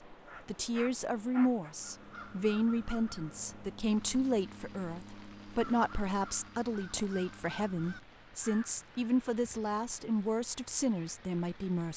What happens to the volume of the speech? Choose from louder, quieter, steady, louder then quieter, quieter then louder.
steady.